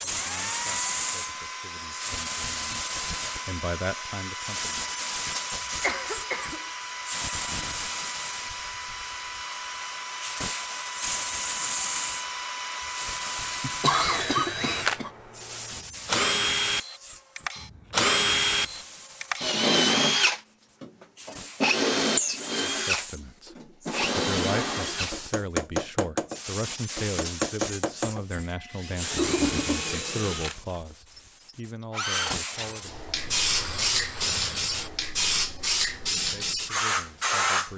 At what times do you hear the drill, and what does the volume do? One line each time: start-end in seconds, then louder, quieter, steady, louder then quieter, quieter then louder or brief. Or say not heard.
0.0-34.9 louder then quieter.